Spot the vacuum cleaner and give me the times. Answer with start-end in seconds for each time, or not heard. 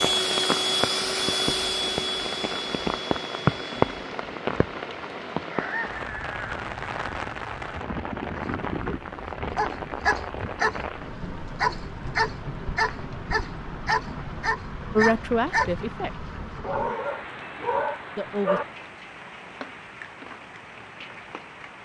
0.0-4.2.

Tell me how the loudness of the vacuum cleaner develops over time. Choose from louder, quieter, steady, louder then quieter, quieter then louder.
quieter.